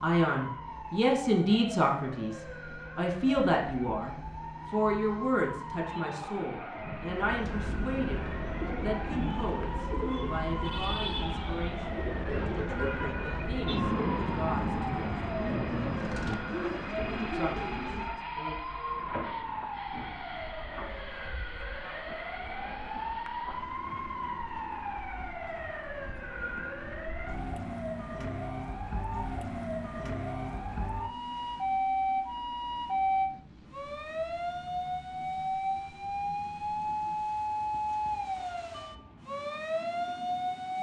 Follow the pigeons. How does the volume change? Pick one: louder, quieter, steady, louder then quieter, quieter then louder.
steady.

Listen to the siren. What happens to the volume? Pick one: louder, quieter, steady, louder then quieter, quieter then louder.
louder.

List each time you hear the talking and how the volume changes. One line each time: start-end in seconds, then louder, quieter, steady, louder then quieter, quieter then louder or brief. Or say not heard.
0.0-15.2 quieter
17.3-18.6 brief.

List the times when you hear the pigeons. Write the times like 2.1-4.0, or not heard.
7.1-18.2.